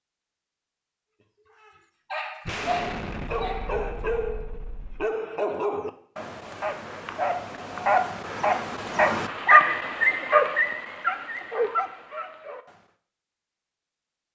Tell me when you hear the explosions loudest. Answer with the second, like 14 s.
3 s.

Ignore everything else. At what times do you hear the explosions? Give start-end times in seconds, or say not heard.
2.5-5.0.